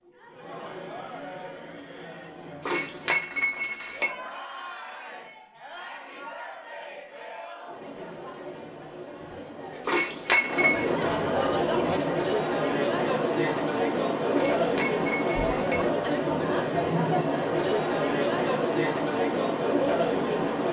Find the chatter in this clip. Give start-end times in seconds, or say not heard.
0.0-20.6.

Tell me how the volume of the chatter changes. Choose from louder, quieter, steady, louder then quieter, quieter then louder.
louder.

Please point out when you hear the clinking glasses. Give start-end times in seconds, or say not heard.
2.6-4.1, 9.8-10.8, 14.3-15.8.